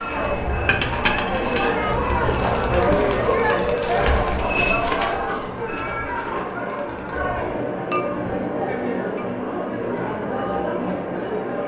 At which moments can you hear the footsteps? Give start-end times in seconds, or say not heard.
0.0-6.5.